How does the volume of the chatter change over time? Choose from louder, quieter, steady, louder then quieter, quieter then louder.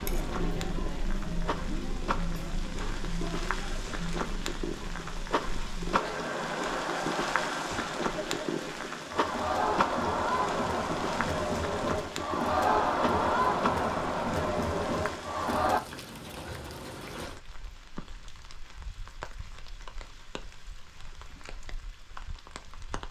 louder.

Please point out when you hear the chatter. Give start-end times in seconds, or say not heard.
0.0-15.8.